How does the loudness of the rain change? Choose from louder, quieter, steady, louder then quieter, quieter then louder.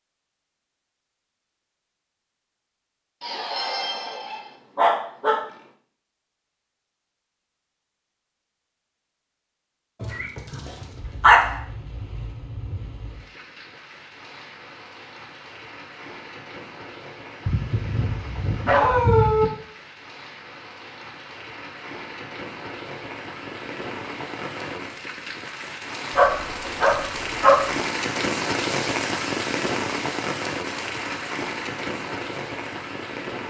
louder.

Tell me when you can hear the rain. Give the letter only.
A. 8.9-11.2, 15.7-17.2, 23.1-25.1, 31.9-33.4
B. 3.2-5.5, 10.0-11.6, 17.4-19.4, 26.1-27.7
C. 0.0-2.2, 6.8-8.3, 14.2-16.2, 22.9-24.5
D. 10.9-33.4
D.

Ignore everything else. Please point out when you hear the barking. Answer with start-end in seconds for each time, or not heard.
3.2-5.5, 10.0-11.6, 17.4-19.4, 26.1-27.7.